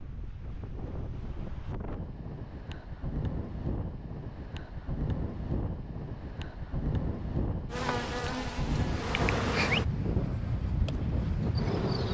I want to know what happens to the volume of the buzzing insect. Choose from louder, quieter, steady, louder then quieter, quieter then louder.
louder then quieter.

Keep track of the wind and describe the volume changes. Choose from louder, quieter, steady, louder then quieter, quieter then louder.
louder.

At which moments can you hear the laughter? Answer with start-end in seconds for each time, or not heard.
not heard.